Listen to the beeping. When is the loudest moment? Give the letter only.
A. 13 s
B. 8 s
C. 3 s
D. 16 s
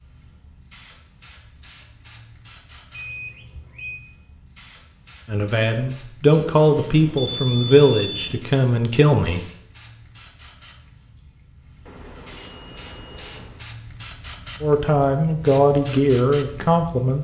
C.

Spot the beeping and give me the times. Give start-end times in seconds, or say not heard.
2.9-4.0, 6.8-8.4, 11.8-13.6.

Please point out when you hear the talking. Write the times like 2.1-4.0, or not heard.
5.2-9.4, 14.6-17.1.